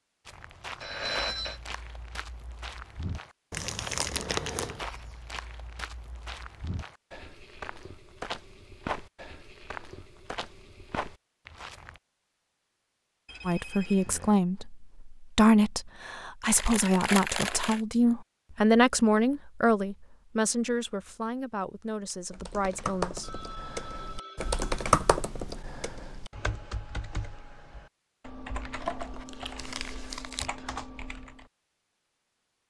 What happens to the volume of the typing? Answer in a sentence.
The volume of the typing goes up, then down.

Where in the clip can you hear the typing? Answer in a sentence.
You can hear the typing from 22.3 to 31.4 s.